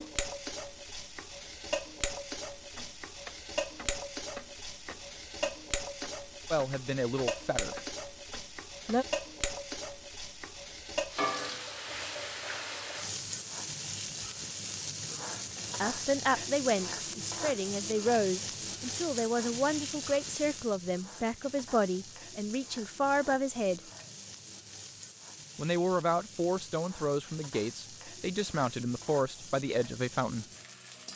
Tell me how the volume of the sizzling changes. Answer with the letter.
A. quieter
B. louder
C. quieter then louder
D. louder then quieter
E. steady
A.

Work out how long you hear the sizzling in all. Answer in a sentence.
The sizzling can be heard for 31 seconds in total.